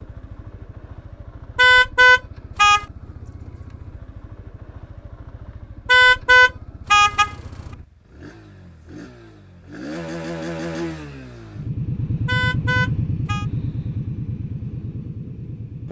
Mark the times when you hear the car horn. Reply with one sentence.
You can hear the car horn from 1.6 to 2.9 s, from 5.8 to 7.3 s and from 12.2 to 13.4 s.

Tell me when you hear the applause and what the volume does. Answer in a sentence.
You can't hear the applause here.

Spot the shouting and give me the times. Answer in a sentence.
The shouting can't be heard in this clip.